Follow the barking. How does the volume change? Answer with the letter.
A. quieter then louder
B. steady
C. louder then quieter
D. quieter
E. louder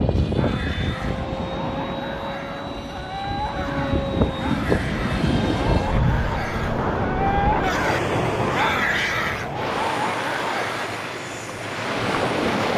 E.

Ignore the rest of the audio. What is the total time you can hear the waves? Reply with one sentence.
The waves can be heard for 13 seconds in total.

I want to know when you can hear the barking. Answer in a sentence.
You can hear the barking from 0.3 to 10.9 s.